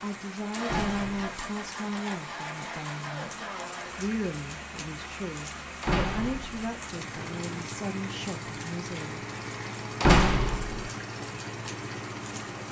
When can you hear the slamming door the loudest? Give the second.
10 s.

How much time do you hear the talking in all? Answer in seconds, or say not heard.
9 s.